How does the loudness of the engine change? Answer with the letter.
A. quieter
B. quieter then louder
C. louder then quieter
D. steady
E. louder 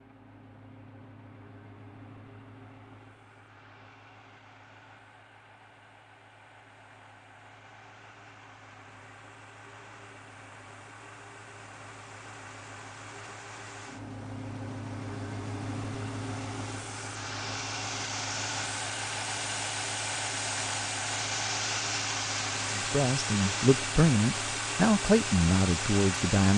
E.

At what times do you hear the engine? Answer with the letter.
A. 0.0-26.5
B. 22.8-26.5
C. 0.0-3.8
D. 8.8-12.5
A.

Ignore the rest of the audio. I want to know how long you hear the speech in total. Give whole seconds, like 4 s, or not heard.
4 s.